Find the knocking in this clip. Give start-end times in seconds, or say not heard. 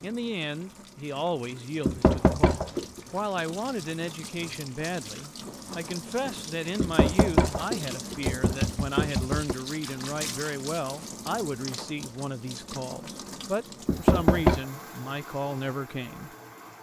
1.9-3.0, 6.8-9.6, 13.8-14.6.